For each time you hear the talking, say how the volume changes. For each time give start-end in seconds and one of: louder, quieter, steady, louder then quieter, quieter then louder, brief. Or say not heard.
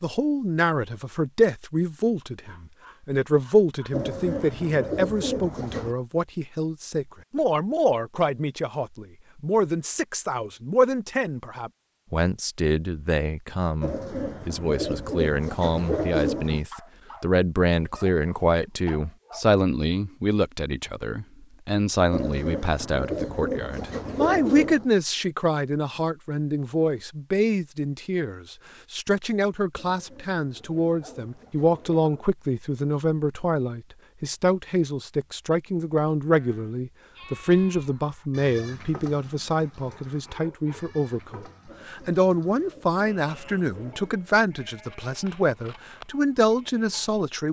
0.0-47.4 steady.